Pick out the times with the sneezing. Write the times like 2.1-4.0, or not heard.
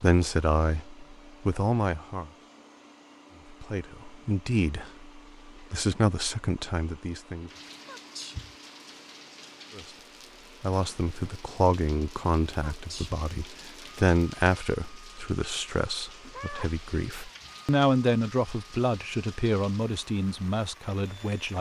7.8-8.6, 12.7-13.2.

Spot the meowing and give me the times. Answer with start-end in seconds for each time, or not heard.
16.2-17.6.